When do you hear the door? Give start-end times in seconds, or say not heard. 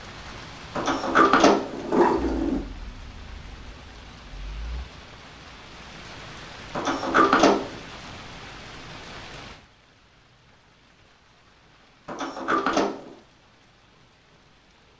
0.8-2.6, 6.7-7.8, 12.1-13.2.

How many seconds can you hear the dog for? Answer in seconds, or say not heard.
not heard.